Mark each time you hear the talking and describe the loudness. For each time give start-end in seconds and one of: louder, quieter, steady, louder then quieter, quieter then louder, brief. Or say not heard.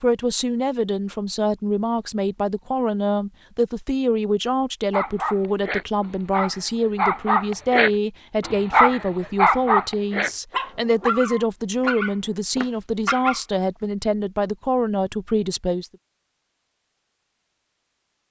0.0-15.8 steady.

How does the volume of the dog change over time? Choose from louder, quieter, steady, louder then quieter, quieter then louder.
louder then quieter.